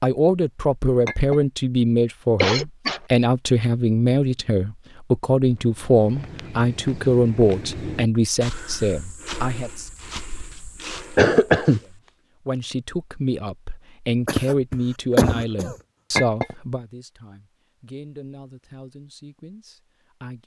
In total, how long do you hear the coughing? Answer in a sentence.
You can hear the coughing for 3 seconds altogether.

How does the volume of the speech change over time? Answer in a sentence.
The loudness of the speech goes down.